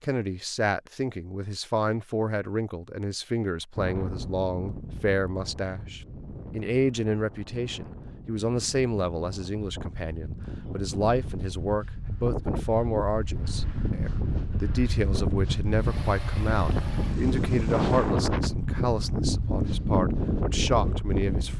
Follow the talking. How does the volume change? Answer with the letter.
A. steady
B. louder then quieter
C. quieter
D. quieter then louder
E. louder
A.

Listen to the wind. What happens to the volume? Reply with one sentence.
The volume of the wind goes up.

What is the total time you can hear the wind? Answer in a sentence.
You can hear the wind for 18 seconds altogether.